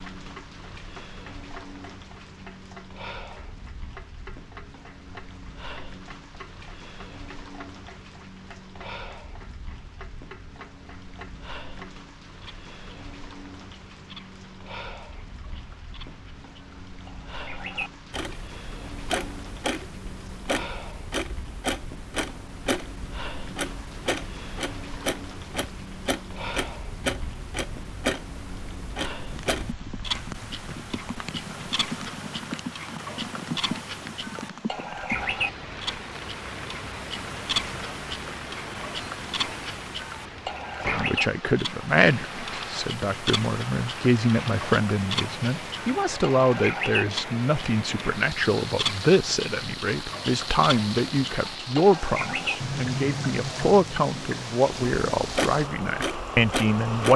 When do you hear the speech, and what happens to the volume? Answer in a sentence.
You can hear the speech from 40.9 to 57.1 s, at a steady volume.